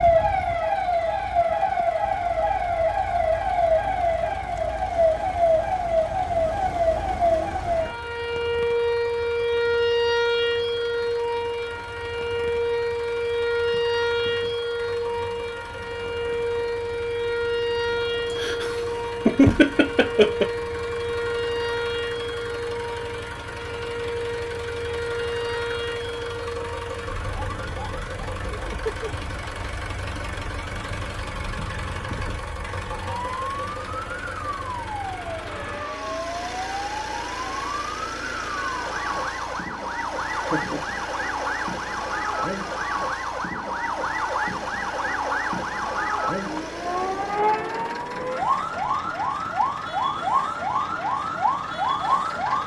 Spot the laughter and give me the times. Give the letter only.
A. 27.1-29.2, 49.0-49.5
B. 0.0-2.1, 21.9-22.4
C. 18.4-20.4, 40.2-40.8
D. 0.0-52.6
C.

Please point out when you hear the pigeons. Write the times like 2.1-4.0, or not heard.
not heard.